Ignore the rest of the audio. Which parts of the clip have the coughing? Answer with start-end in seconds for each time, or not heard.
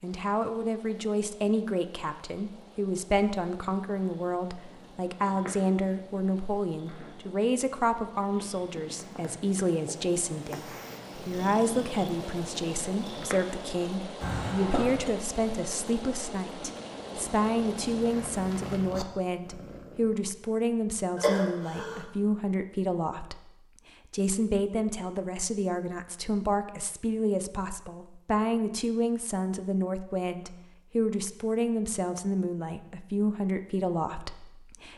14.2-15.1, 21.1-22.1.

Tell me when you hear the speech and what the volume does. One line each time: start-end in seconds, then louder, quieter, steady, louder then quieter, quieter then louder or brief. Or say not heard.
0.0-23.5 steady
24.1-34.9 steady.